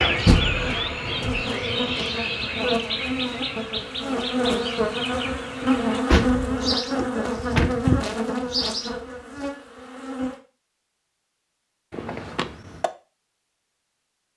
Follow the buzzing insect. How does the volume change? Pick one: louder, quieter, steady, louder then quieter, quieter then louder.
louder then quieter.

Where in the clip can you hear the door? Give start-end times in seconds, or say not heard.
0.2-1.4, 5.6-7.8, 11.9-12.9.